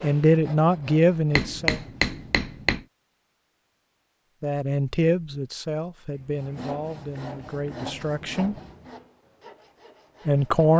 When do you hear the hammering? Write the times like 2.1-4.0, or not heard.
1.4-2.9.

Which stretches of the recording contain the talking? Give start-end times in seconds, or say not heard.
0.0-1.8, 4.4-8.6, 10.2-10.7.